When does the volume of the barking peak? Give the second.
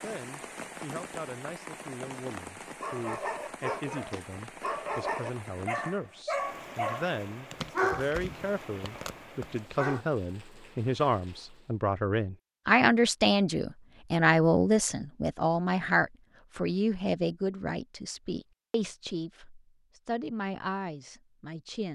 8 s.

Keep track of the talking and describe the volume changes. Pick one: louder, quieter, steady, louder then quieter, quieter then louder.
louder then quieter.